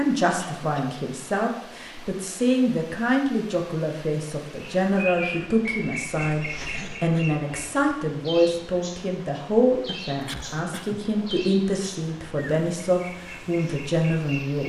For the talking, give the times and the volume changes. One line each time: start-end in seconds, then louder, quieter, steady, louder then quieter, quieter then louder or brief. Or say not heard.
0.0-14.6 steady.